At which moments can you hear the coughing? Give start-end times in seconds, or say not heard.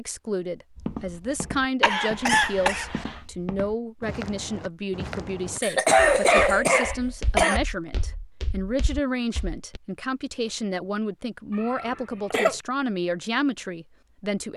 1.8-3.1, 5.6-7.6, 11.5-12.7.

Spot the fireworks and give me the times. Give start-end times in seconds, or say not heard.
not heard.